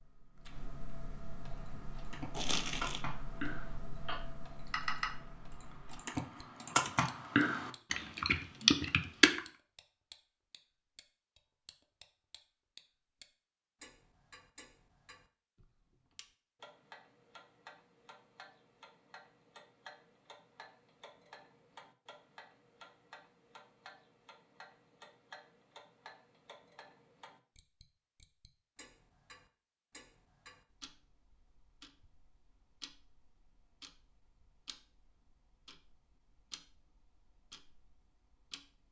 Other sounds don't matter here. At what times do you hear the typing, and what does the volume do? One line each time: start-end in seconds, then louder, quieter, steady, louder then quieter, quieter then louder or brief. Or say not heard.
1.6-9.4 louder.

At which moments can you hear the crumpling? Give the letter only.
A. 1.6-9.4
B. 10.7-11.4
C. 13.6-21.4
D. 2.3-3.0
D.